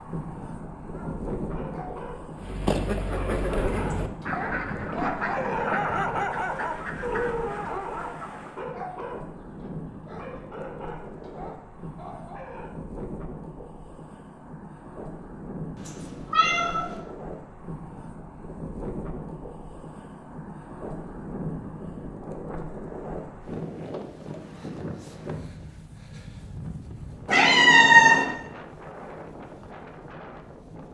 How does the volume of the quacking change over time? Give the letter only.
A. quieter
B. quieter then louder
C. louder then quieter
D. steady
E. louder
A.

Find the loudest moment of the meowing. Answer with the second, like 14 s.
28 s.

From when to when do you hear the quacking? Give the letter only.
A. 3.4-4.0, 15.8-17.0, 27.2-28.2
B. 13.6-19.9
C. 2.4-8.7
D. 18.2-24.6
C.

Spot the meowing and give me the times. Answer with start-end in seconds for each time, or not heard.
3.4-4.0, 15.8-17.0, 27.2-28.2.